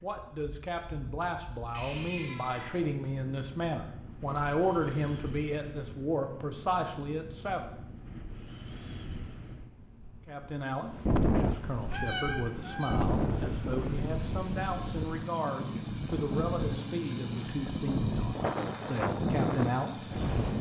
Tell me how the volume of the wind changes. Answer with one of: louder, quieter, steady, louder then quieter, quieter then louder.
louder.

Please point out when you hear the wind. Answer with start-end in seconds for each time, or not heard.
0.0-20.5.